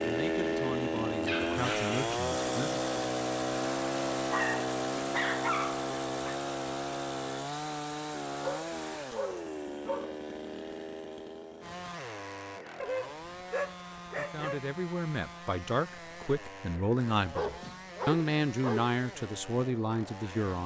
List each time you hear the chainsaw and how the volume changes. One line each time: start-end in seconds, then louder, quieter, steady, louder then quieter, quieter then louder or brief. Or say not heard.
0.0-20.6 quieter.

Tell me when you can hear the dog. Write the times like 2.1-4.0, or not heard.
1.2-2.1, 4.3-6.3, 8.4-10.2, 12.8-14.7, 16.9-18.9.